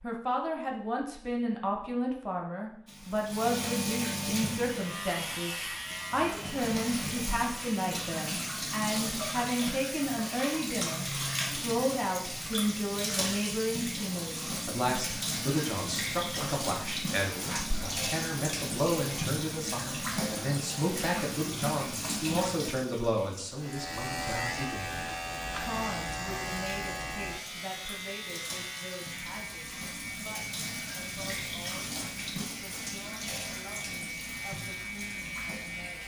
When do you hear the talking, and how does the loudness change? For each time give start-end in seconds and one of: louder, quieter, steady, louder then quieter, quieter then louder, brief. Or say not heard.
0.0-36.0 quieter.